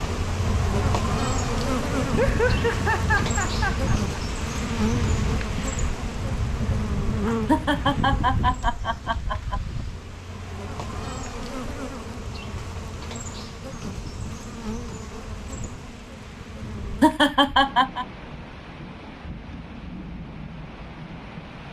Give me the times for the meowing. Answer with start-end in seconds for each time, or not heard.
not heard.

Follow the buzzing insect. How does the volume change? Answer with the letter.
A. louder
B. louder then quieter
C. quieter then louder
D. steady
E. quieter
E.